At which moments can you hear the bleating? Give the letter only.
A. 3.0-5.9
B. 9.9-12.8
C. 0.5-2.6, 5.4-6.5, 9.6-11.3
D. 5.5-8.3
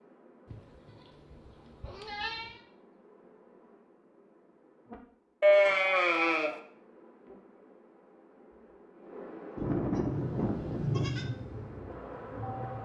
C.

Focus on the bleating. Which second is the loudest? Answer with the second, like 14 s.
6 s.